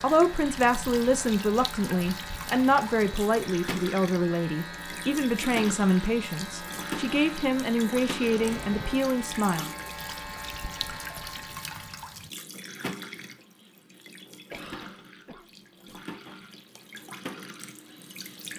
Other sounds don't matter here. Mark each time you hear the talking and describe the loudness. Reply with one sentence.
You can hear the talking from 0.0 to 9.7 s, at a steady volume.